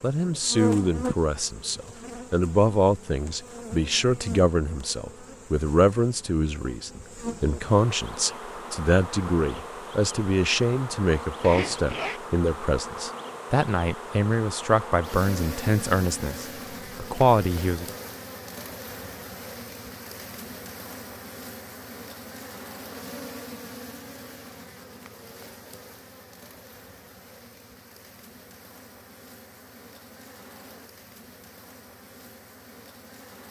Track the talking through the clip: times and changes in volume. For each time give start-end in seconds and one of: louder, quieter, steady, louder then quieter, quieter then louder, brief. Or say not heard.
0.0-17.9 steady.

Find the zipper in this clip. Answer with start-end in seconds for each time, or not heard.
11.4-12.2.